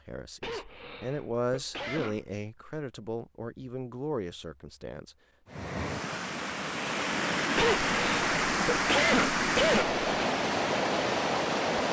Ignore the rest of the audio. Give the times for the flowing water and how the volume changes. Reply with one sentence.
You can hear the flowing water from 5.5 to 11.8 s, getting louder.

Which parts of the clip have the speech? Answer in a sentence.
You can hear the speech from 0.1 to 5.2 s.